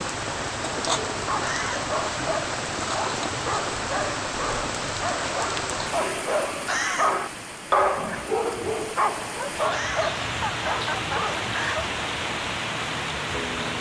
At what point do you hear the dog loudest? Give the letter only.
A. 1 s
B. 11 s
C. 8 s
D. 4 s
C.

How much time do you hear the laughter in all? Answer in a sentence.
You can hear the laughter for 3 seconds altogether.